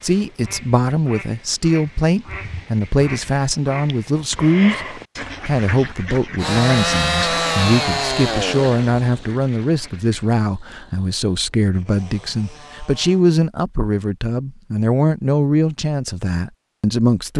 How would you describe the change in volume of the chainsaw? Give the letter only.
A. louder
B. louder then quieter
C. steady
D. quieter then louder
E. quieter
D.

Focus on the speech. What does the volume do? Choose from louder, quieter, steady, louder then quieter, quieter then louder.
steady.